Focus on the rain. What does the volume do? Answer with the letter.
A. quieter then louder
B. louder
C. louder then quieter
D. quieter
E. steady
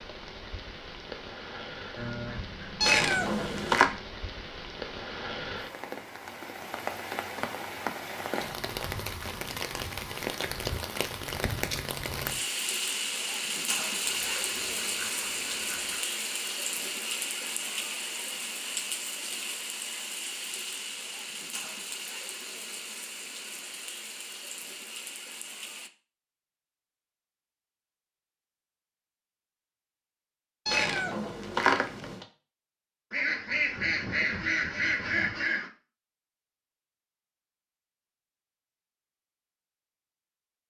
C.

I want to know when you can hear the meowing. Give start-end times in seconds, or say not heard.
2.8-3.9, 30.6-32.2.